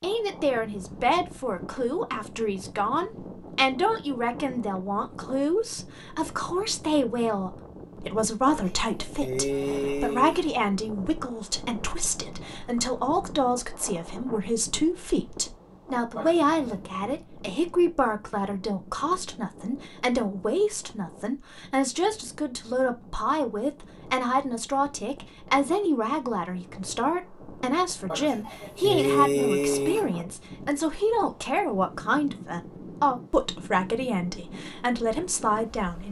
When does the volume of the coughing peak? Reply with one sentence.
The loudest moment of the coughing is at 29 seconds.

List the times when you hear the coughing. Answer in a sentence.
You can hear the coughing from 8.4 to 10.4 s, from 16.1 to 16.8 s and from 28.1 to 30.1 s.